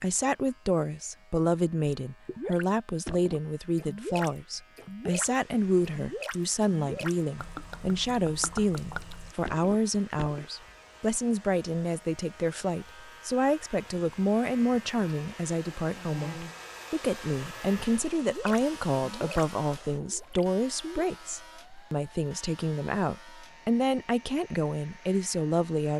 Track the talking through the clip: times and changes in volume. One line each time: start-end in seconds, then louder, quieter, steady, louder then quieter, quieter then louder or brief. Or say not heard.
0.0-25.9 steady.